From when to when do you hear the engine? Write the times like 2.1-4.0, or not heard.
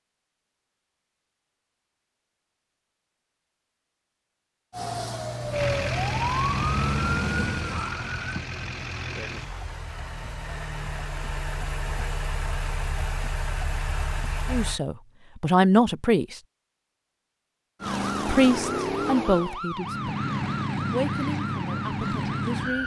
5.5-14.8.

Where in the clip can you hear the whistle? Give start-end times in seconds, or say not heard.
not heard.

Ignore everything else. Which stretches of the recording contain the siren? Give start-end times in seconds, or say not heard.
4.7-8.4, 17.8-22.8.